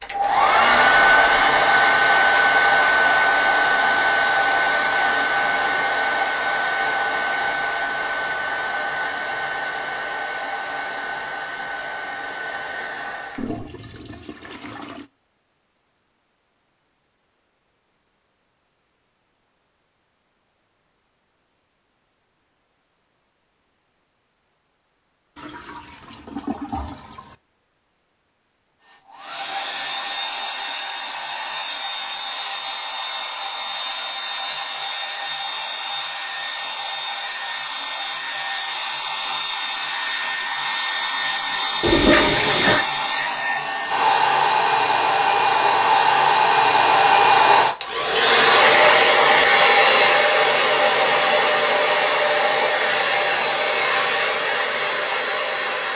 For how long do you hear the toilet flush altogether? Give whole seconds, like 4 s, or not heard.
5 s.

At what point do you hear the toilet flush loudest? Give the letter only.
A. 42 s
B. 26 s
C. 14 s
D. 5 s
A.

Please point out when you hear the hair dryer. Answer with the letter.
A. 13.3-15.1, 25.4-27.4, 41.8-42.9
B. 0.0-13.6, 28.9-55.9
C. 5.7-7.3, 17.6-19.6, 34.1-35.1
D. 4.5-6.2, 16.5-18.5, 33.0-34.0
B.